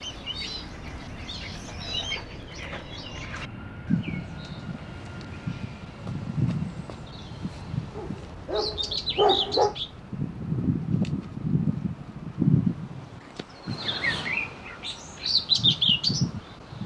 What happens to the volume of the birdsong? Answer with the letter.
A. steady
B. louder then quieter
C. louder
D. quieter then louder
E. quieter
C.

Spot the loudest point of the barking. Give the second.
9 s.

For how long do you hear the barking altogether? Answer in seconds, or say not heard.
2 s.